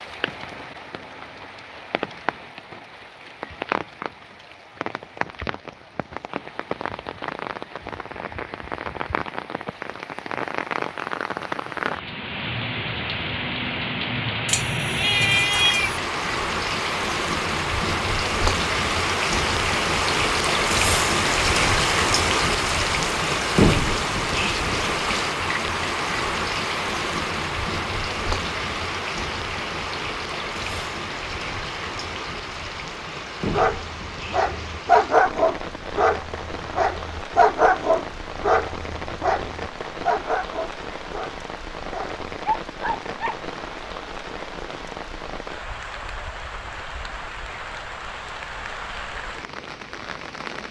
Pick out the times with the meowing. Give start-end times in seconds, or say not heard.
14.4-16.0.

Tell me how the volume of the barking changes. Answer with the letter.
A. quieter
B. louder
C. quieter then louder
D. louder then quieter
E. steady
A.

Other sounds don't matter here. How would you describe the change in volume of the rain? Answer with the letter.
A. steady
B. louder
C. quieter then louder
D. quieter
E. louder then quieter
E.